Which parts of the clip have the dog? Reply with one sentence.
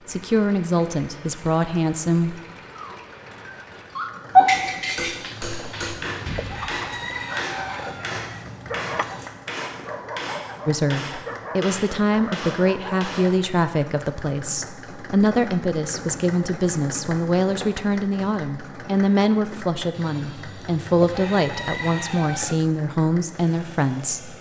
You can hear the dog from 2.8 to 13.4 s.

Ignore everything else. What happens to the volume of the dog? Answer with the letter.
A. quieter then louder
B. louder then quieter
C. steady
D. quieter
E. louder
D.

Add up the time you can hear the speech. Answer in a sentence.
You can hear the speech for 16 seconds altogether.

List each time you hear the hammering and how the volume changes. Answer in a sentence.
You can hear the hammering from 4.5 to 13.3 s, at a steady volume.